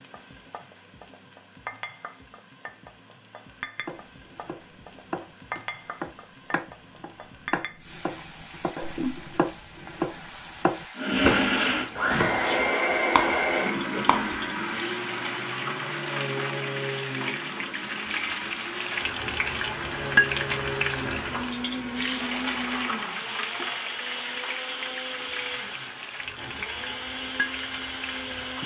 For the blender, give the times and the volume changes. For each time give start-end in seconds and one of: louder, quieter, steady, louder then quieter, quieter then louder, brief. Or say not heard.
10.9-28.6 quieter.